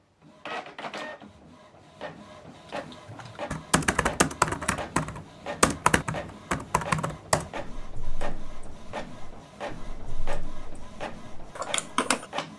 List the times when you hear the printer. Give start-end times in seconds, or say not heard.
0.2-12.5.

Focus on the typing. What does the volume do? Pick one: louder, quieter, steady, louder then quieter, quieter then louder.
quieter then louder.